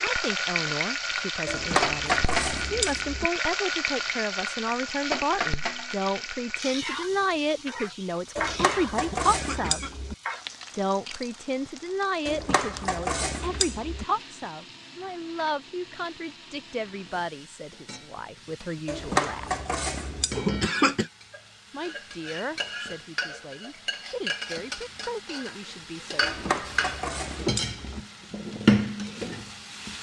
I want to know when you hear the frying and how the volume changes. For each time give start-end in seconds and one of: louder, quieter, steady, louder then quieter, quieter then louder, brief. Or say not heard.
0.0-29.9 quieter then louder.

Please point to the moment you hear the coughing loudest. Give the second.
21 s.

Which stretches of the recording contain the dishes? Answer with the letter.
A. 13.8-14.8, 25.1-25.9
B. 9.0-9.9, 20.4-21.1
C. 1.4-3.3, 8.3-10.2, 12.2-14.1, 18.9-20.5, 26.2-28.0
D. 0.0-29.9
C.